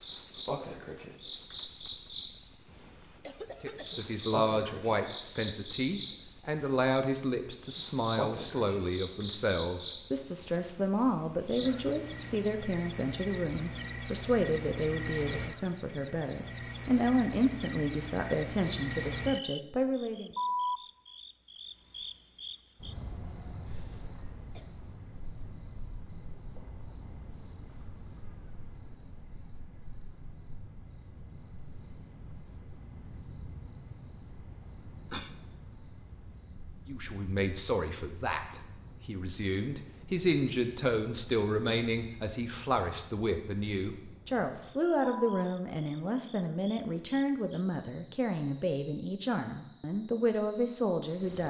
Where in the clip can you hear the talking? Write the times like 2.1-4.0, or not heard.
3.6-20.3, 36.9-51.4.